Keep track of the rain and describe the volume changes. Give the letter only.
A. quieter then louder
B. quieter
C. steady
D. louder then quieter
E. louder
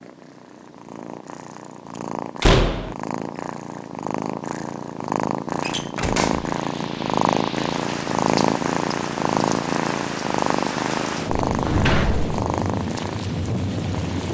E.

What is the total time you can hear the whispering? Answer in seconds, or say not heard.
not heard.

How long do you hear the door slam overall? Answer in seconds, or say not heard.
2 s.